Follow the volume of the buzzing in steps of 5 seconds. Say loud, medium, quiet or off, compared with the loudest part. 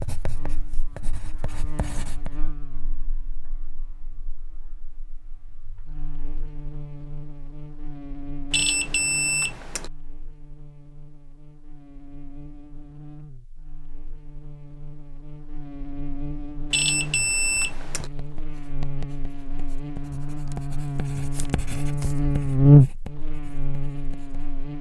quiet, quiet, quiet, quiet, loud.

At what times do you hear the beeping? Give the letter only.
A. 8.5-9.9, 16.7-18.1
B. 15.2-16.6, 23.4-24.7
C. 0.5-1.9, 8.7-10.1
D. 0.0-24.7
A.